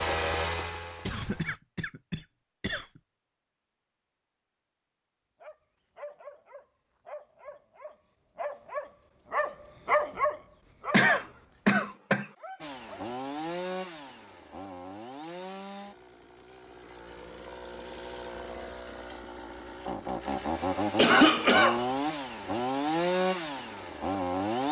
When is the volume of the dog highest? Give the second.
10 s.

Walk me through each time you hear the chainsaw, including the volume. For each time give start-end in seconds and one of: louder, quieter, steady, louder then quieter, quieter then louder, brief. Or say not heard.
0.0-1.6 brief
12.6-24.6 quieter then louder.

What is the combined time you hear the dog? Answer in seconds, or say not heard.
8 s.